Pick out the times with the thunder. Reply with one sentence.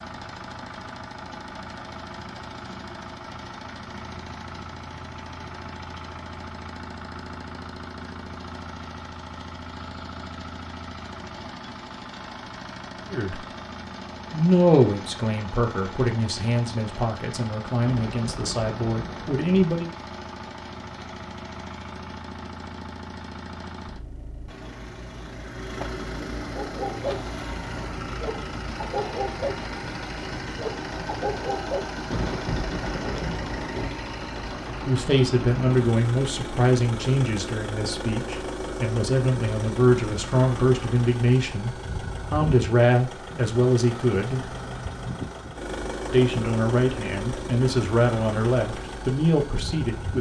The thunder can be heard from 17.8 to 19.6 s and from 32.0 to 33.9 s.